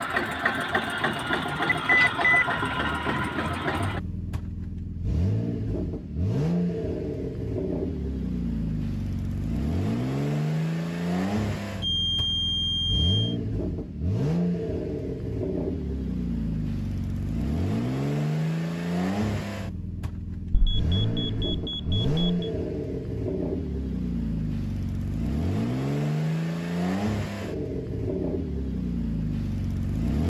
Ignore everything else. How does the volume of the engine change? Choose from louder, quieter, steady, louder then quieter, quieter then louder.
steady.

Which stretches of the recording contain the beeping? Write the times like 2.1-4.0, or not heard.
1.9-2.5, 11.8-13.3, 20.5-22.5.